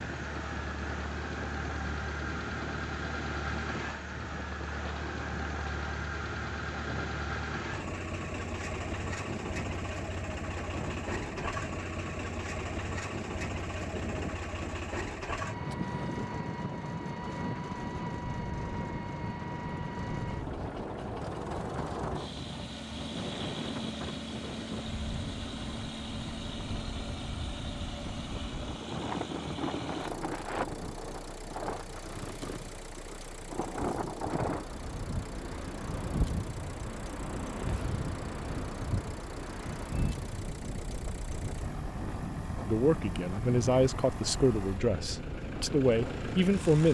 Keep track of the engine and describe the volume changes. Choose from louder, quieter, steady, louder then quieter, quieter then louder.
quieter.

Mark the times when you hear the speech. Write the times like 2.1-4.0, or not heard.
42.6-46.8.